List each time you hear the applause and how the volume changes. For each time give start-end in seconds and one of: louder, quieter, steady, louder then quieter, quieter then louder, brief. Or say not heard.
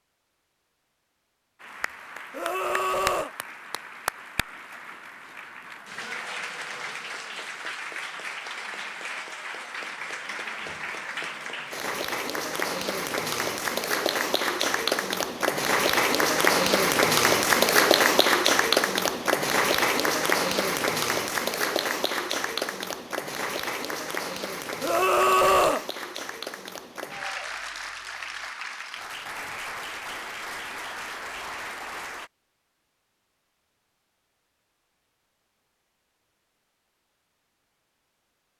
1.6-32.3 louder then quieter.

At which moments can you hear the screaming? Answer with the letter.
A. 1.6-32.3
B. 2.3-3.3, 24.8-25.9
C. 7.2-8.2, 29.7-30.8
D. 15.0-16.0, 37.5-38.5
B.